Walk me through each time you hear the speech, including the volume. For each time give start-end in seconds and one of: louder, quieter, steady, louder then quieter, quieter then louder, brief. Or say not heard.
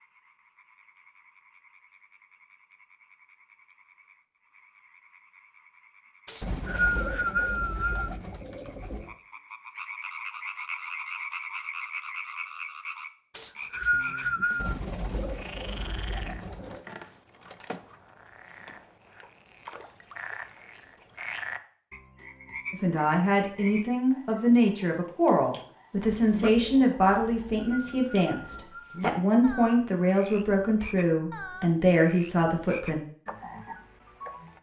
22.7-33.0 steady.